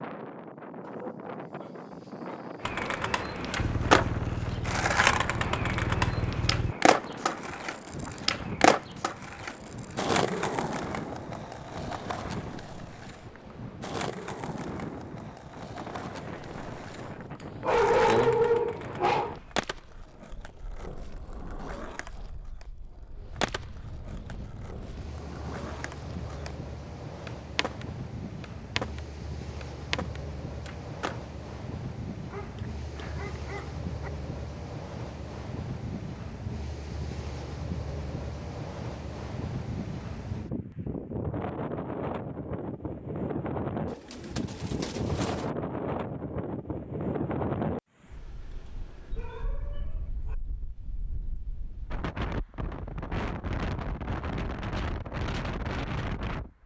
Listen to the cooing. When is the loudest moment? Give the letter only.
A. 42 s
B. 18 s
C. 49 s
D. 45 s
D.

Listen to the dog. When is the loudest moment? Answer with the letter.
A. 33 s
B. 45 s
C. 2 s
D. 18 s
D.